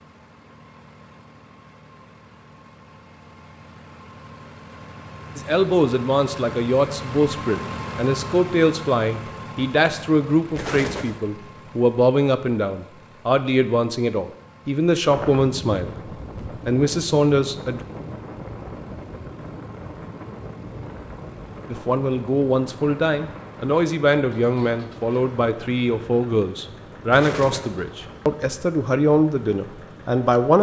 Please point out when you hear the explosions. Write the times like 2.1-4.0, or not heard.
10.6-11.2, 27.1-27.8.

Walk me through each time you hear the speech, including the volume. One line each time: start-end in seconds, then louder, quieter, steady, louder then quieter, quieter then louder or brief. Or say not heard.
5.3-17.9 steady
21.7-30.5 steady.